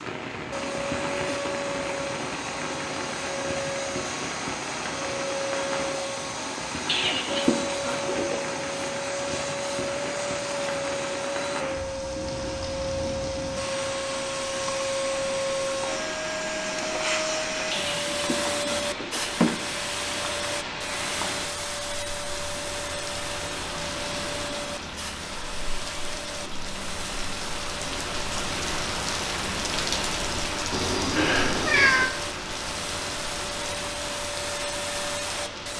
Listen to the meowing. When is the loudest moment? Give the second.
32 s.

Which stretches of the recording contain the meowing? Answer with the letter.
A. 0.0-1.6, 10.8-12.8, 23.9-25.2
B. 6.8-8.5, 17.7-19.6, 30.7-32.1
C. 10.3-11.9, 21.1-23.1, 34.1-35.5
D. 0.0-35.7
B.